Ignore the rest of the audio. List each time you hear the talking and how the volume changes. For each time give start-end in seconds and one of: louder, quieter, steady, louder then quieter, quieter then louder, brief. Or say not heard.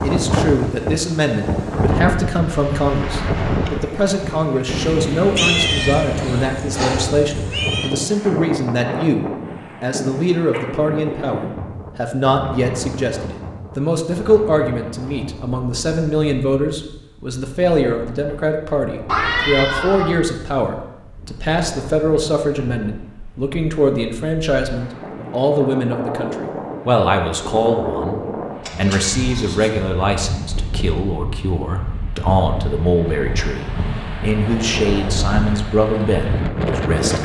0.0-37.2 steady.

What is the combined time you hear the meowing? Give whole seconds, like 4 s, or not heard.
5 s.